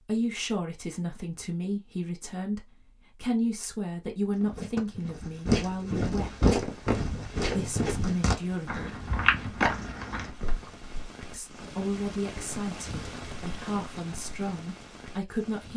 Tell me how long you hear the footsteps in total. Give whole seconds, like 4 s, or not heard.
7 s.